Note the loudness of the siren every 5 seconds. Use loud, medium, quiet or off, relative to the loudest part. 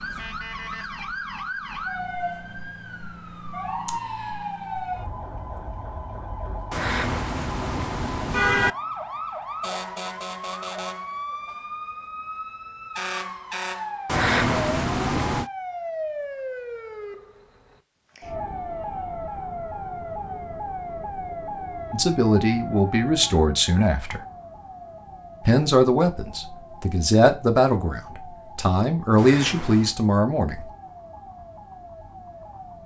loud, loud, loud, loud, loud, medium, medium.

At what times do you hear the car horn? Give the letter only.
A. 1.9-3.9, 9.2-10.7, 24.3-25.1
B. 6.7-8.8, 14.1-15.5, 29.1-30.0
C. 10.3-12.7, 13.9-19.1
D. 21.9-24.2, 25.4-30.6
B.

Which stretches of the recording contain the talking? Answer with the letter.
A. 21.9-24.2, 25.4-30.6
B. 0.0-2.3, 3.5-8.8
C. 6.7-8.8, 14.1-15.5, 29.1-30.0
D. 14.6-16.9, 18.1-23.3
A.